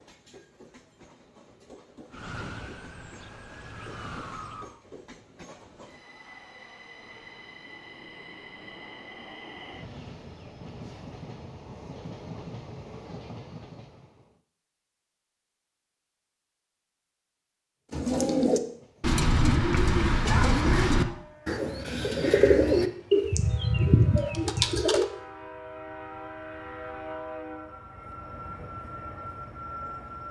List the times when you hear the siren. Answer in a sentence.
You can hear the siren from 2.1 to 4.8 s.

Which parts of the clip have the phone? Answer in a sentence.
The phone can't be heard in this clip.